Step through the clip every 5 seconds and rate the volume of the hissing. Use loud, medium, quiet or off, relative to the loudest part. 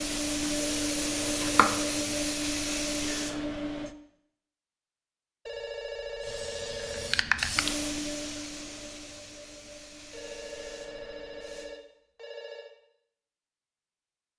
loud, loud, quiet.